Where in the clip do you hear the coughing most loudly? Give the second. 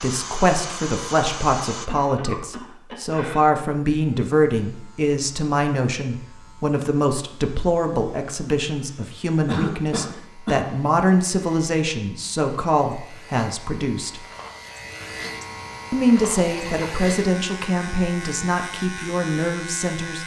10 s.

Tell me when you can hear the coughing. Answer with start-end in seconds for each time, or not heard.
1.9-3.4, 9.4-10.7, 16.4-16.9.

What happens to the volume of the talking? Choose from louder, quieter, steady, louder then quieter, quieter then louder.
steady.